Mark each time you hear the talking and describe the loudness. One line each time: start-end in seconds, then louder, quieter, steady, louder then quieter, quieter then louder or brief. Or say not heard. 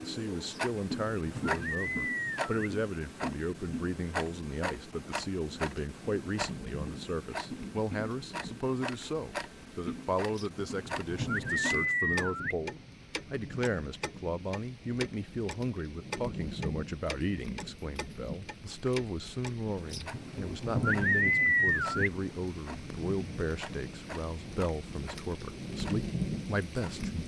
0.0-27.2 steady.